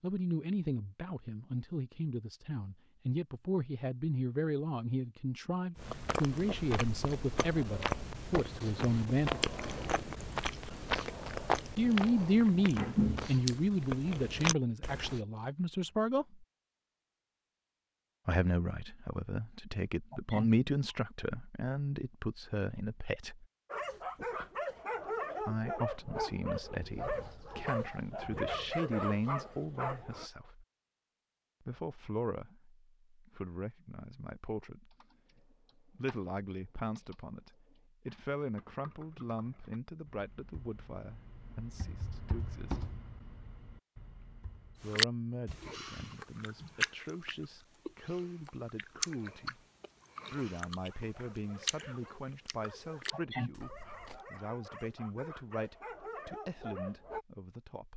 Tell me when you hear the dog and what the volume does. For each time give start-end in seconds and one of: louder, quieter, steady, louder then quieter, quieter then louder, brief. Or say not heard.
23.7-30.3 steady
50.8-57.2 louder.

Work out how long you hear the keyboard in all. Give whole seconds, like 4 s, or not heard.
10 s.